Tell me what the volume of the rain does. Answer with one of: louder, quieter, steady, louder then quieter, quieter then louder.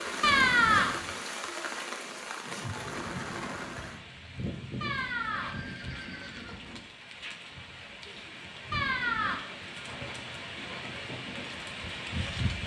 quieter then louder.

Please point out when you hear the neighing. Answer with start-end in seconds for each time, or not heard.
0.2-1.0, 4.8-6.8, 8.7-9.4.